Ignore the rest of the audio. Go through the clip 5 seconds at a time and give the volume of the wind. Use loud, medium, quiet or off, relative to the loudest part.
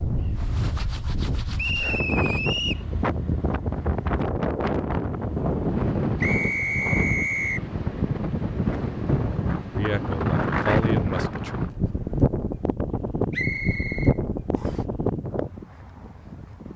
loud, loud, loud, medium.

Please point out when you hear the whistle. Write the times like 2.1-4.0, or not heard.
1.6-2.9, 6.2-7.6, 13.3-14.8.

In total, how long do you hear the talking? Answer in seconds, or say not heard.
2 s.